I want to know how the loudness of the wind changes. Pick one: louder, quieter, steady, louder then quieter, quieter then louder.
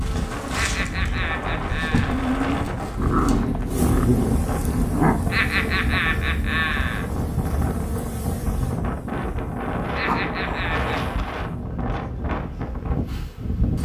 steady.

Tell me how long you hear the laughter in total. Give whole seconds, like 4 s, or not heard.
5 s.